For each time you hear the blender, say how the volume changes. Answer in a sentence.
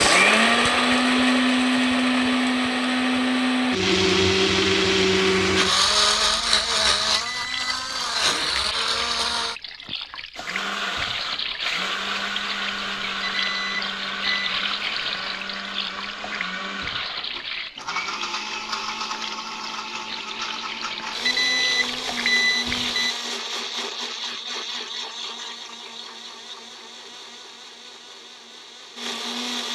The blender can be heard from 0.0 to 29.7 s, getting quieter.